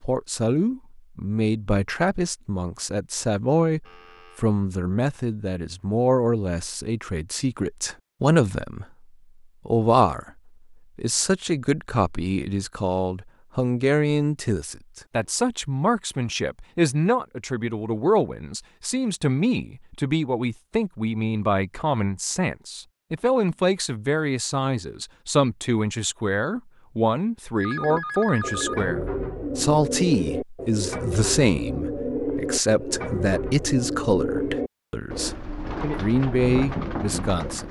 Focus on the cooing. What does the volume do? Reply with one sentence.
The volume of the cooing stays about the same.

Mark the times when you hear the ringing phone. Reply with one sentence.
The ringing phone can be heard from 3.9 to 4.5 s and from 27.6 to 28.8 s.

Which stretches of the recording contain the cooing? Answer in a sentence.
You can hear the cooing from 27.8 to 37.6 s.